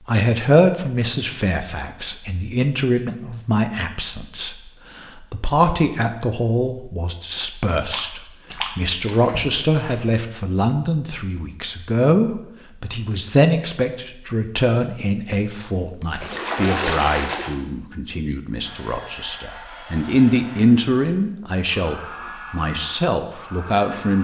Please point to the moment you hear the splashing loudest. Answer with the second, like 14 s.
17 s.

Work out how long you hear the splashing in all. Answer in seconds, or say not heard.
5 s.